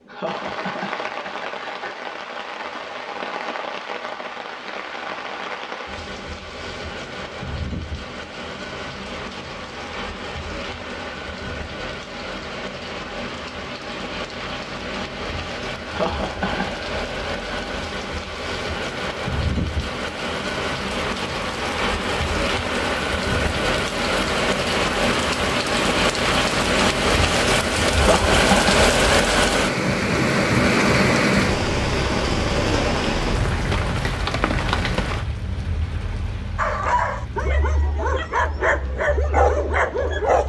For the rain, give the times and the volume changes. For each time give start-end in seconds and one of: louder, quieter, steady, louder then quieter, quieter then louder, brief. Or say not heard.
0.0-40.4 louder then quieter.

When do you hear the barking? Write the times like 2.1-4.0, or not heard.
36.5-40.4.